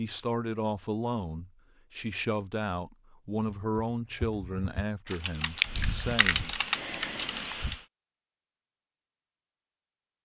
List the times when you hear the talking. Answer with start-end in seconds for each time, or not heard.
0.0-6.5.